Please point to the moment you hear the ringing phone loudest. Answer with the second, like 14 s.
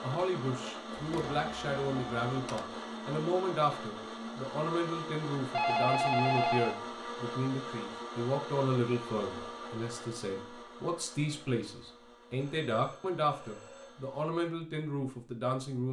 6 s.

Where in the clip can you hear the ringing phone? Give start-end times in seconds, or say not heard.
0.9-2.6, 5.5-6.8, 12.3-14.0.